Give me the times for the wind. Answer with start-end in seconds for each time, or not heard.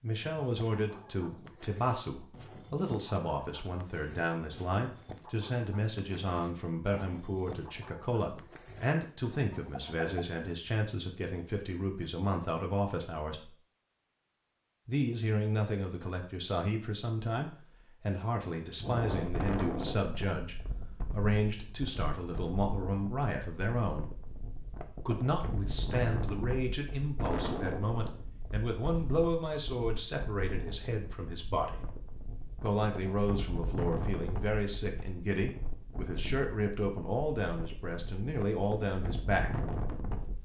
18.8-40.4.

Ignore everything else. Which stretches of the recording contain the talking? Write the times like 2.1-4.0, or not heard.
0.0-13.5, 14.8-24.1, 25.1-31.8, 32.6-39.5.